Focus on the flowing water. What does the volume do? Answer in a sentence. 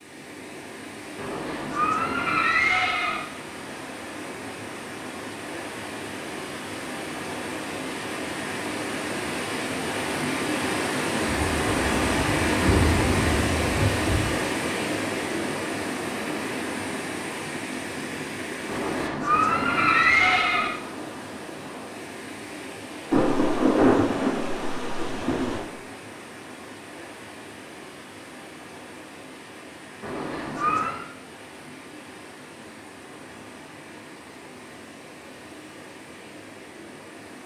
The volume of the flowing water goes up, then down.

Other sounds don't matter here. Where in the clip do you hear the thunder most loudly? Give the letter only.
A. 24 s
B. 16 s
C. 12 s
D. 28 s
A.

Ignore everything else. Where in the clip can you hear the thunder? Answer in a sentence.
The thunder can be heard from 11.2 to 14.3 s and from 23.1 to 25.6 s.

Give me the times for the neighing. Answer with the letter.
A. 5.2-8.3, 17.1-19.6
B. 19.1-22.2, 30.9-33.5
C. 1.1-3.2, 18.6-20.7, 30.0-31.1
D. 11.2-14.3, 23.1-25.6
C.